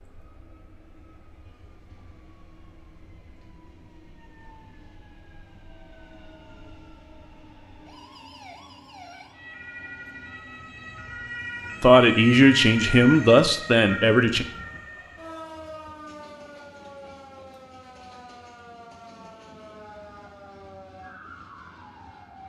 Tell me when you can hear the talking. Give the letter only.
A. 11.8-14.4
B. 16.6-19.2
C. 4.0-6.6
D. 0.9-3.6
A.